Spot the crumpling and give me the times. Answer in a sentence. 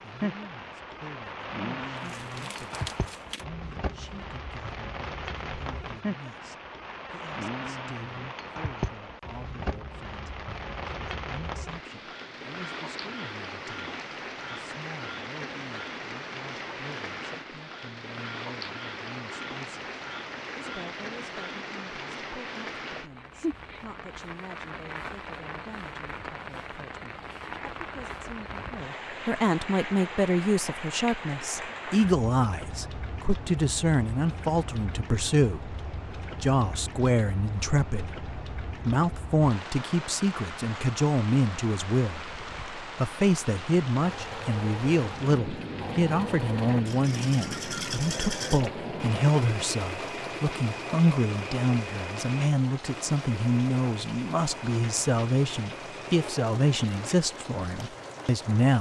The crumpling can be heard from 1.9 to 3.5 s.